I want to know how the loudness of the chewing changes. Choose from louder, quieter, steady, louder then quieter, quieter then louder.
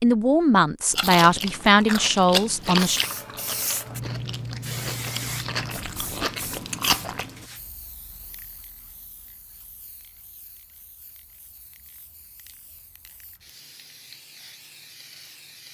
quieter then louder.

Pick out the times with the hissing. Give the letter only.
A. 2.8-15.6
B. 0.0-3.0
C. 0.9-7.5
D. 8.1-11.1
A.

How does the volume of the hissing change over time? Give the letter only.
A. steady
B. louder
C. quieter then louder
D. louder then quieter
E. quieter
C.